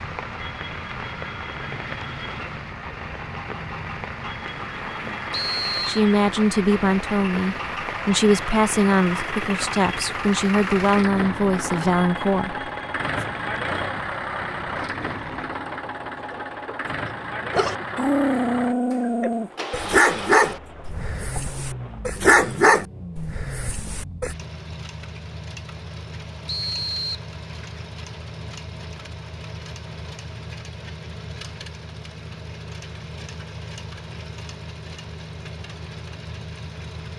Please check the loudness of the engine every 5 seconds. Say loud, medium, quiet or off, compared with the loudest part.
medium, loud, loud, loud, medium, medium, medium, medium.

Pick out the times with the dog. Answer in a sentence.
You can hear the dog from 17.5 to 24.4 s.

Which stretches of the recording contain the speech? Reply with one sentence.
You can hear the speech from 5.8 to 12.7 s.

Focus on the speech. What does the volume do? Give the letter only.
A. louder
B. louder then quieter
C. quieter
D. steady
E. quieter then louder
D.